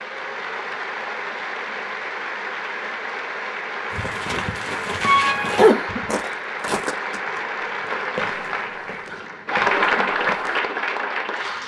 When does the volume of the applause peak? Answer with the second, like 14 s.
10 s.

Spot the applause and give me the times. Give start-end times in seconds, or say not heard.
0.0-11.6.